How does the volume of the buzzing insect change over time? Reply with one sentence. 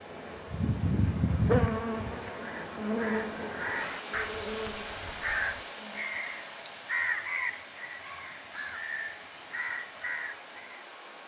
The volume of the buzzing insect goes down.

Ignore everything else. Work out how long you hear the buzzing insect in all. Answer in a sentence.
You can hear the buzzing insect for 6 seconds altogether.